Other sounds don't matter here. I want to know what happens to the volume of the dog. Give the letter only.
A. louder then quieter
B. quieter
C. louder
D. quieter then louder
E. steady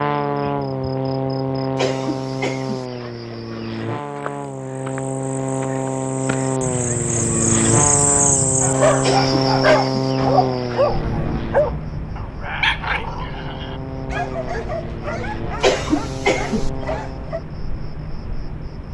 B.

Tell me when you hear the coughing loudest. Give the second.
16 s.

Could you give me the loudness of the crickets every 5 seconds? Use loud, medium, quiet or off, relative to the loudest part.
quiet, loud, medium, medium.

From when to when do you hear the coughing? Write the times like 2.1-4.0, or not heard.
1.8-2.9, 9.0-10.1, 15.6-16.7.